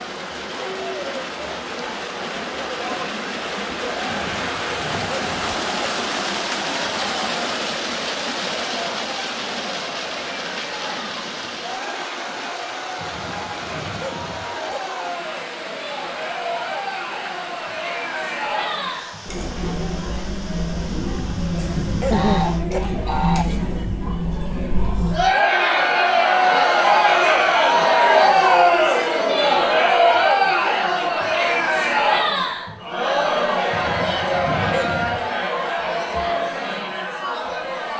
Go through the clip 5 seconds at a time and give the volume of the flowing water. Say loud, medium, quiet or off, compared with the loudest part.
loud, loud, medium, medium, quiet, off, off, off.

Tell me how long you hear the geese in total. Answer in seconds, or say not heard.
2 s.